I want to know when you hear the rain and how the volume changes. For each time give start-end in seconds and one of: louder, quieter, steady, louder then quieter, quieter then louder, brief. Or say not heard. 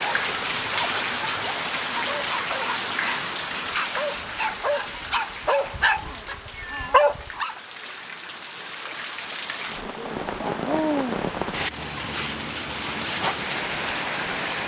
0.0-14.6 quieter then louder.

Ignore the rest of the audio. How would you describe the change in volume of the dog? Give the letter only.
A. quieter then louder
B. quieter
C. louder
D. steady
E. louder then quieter
C.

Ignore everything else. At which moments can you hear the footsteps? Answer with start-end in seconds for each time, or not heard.
not heard.